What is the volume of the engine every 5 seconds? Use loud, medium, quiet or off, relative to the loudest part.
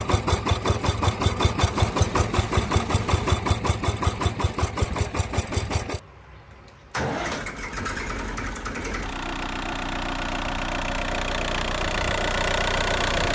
loud, medium, loud.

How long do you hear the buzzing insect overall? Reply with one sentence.
The buzzing insect can be heard for 2 seconds in total.